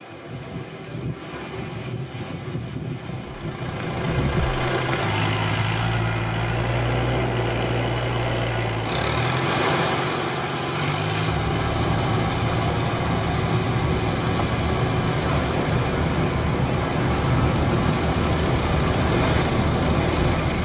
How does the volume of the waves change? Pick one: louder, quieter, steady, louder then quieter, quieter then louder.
louder.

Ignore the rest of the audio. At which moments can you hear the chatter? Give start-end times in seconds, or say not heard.
not heard.